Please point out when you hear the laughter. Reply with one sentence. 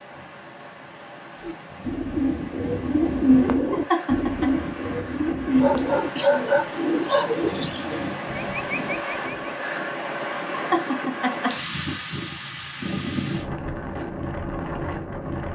You can hear the laughter from 3.7 to 4.5 s and from 10.5 to 11.6 s.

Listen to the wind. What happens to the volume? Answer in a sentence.
The loudness of the wind goes up.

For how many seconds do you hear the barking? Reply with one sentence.
You can hear the barking for 2 seconds altogether.